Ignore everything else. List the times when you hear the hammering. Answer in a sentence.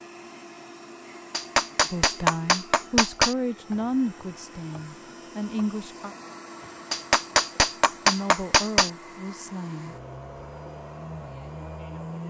You can hear the hammering from 1.3 to 3.4 s and from 6.9 to 8.9 s.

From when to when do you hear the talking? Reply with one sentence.
You can hear the talking from 1.9 to 6.2 s and from 8.1 to 9.9 s.